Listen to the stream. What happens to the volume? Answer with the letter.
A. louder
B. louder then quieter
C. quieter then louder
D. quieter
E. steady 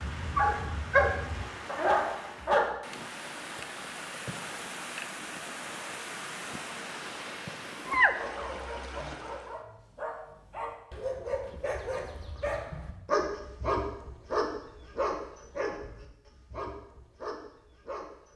A.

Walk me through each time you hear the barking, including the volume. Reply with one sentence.
You can hear the barking briefly from 0.0 to 2.8 s; and from 8.0 to 18.3 s, getting louder then quieter.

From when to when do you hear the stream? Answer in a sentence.
The stream can be heard from 0.0 to 9.6 s.